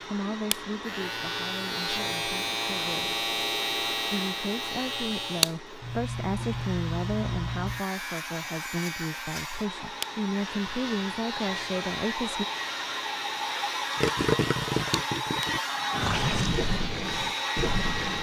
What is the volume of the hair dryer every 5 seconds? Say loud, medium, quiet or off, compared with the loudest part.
medium, medium, loud, loud.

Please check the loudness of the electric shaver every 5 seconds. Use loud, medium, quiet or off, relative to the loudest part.
loud, loud, medium, medium.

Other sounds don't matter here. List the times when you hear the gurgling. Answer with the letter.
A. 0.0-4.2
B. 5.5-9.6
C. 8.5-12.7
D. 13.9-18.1
D.